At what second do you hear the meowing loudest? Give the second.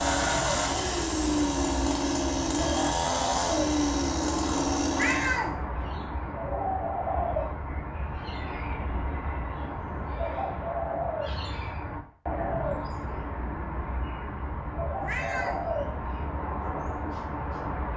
5 s.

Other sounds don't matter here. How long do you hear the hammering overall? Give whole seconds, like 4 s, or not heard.
not heard.